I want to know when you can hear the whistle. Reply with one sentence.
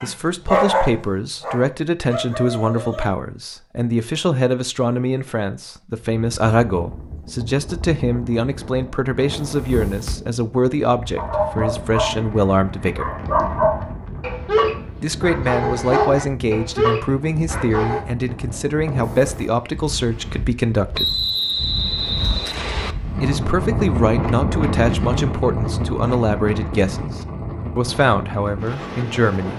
The whistle can be heard from 20.9 to 22.9 s.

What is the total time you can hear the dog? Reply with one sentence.
You can hear the dog for 10 seconds altogether.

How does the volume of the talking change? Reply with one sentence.
The volume of the talking stays about the same.